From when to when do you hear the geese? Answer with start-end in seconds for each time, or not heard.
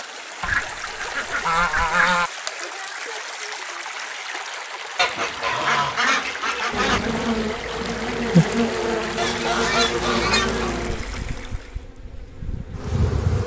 0.4-2.3, 5.0-7.0, 9.2-10.8.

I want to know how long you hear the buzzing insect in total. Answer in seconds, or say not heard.
7 s.